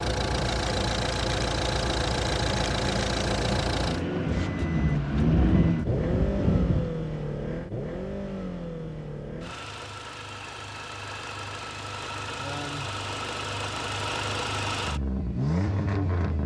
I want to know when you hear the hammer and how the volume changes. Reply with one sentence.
You can't hear the hammer here.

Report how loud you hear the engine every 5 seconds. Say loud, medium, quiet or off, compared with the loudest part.
loud, loud, medium, loud.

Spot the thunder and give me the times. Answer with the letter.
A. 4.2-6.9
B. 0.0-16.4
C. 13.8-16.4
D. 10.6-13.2
A.